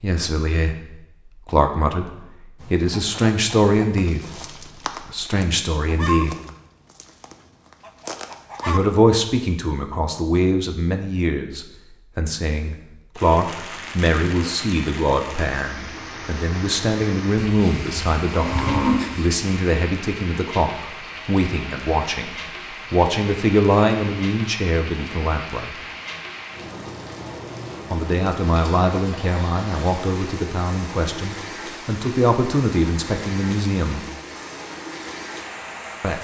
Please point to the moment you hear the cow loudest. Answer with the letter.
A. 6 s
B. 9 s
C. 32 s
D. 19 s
D.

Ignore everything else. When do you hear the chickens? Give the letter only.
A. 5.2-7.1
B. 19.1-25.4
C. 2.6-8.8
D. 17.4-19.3
C.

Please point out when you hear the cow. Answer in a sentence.
The cow can be heard from 17.4 to 19.3 s.